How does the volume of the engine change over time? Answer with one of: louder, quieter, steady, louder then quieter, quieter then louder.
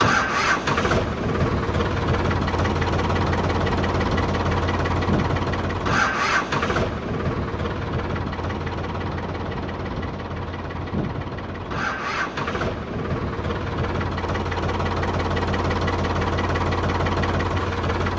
quieter then louder.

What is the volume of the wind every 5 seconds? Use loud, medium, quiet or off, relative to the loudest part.
loud, loud, loud, off.